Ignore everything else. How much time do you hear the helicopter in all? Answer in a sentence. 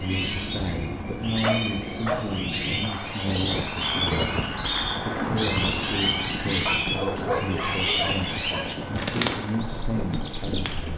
The helicopter can be heard for 11 seconds in total.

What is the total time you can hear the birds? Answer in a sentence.
The birds can be heard for 11 seconds in total.